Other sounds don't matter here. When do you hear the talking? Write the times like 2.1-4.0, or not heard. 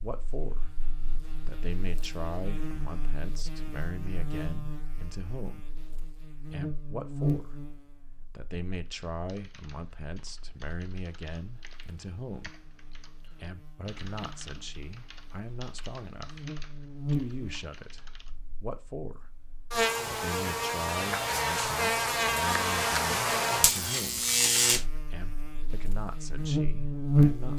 0.0-5.7, 6.5-7.7, 8.3-12.6, 13.3-19.3, 20.1-24.2, 25.1-27.5.